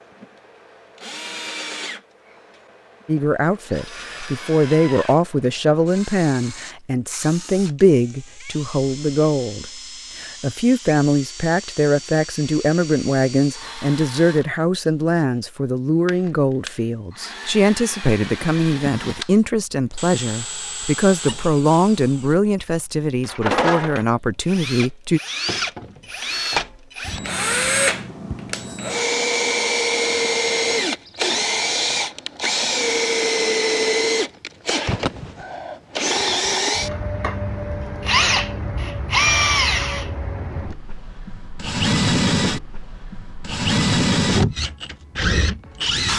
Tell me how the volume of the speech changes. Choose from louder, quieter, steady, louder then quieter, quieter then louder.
steady.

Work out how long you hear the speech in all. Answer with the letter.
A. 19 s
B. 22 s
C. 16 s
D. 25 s
B.